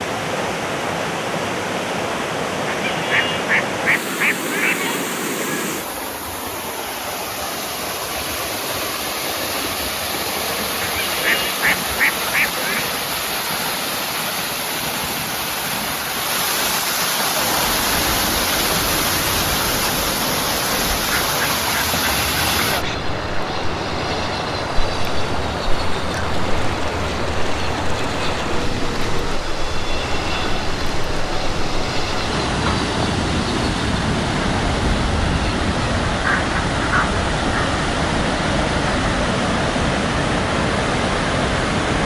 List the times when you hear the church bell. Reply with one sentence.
You can't hear the church bell here.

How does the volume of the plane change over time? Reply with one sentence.
The volume of the plane stays about the same.